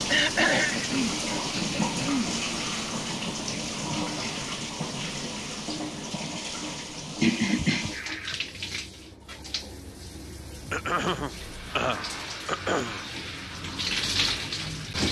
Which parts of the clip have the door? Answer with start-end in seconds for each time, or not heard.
not heard.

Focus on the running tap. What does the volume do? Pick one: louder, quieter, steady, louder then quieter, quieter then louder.
quieter then louder.